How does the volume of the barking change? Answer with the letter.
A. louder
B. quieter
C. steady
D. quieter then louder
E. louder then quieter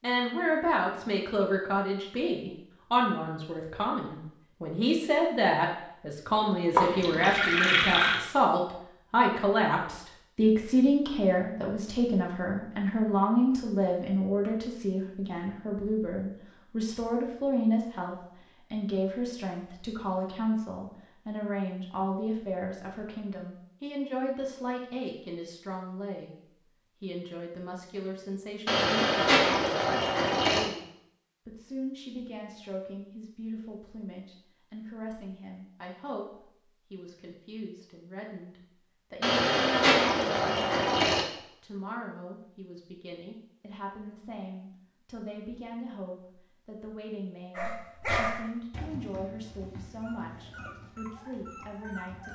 B.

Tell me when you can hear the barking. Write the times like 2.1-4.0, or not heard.
47.5-52.3.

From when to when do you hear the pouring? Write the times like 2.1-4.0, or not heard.
6.8-8.2, 28.6-30.6, 39.2-41.2.